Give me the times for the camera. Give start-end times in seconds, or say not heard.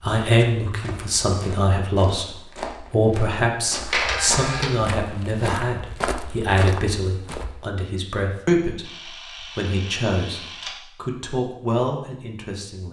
3.9-4.7, 8.8-10.8.